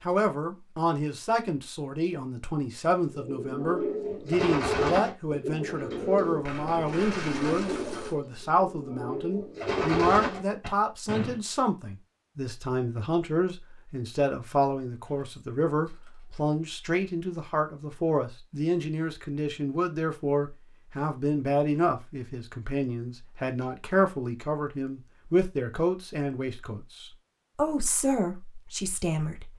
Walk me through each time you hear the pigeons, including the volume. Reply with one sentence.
The pigeons can be heard from 3.1 to 11.4 s, getting quieter then louder.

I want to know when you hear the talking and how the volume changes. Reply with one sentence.
The talking can be heard from 0.0 to 29.5 s, at a steady volume.